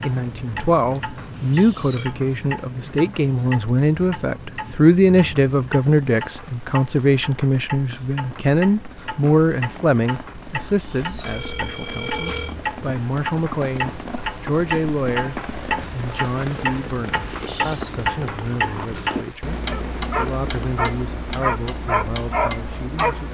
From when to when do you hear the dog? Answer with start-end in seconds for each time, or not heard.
19.6-23.3.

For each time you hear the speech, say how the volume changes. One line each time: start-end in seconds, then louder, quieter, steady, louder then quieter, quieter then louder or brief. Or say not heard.
0.0-23.3 quieter.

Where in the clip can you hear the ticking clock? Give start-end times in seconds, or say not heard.
0.0-23.3.